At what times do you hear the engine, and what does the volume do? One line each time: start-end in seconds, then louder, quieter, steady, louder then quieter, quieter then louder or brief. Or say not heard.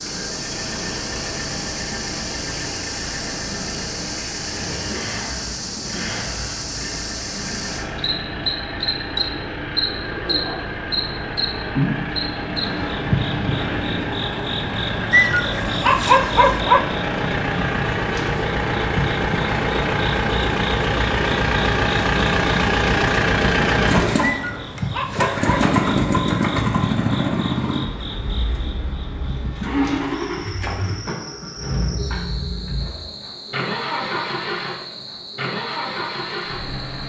0.0-37.0 louder then quieter.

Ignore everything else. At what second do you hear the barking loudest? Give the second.
16 s.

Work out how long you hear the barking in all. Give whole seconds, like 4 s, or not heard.
3 s.